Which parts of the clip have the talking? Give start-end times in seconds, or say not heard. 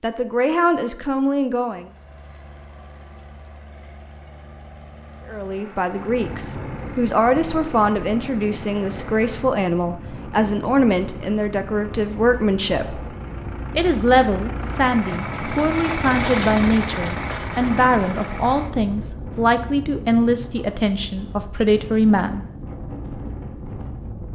0.0-1.9, 5.2-13.1, 13.8-22.4.